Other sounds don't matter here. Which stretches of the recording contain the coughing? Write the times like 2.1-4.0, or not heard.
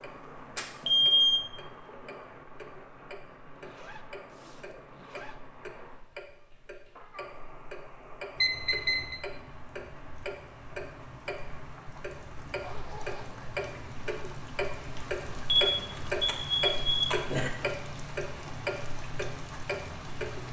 not heard.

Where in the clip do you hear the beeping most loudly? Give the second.
1 s.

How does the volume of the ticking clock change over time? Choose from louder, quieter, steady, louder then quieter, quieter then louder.
louder.